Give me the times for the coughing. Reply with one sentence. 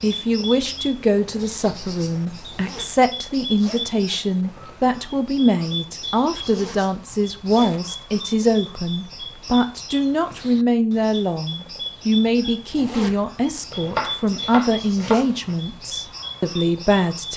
The coughing can't be heard in this clip.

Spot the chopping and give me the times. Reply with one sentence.
The chopping can be heard from 13.7 to 15.6 s.